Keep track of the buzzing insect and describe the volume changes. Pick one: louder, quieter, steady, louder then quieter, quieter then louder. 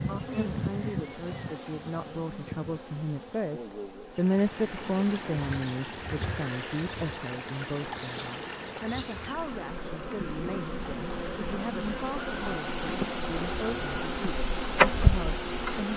quieter then louder.